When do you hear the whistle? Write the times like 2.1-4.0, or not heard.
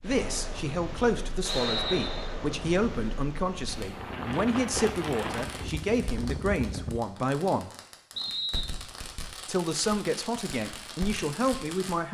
1.4-2.4, 8.2-8.8.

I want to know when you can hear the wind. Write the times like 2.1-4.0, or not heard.
0.0-7.0.